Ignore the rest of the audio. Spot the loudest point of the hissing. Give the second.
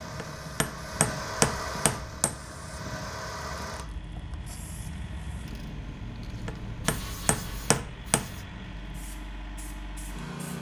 7 s.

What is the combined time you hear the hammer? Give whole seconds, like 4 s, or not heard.
4 s.